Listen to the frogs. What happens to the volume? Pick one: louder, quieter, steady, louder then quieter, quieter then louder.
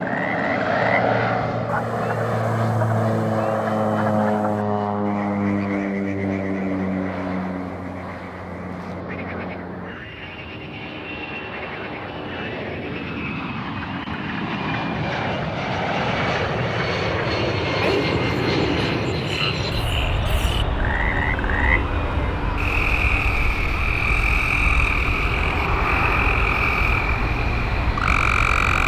quieter then louder.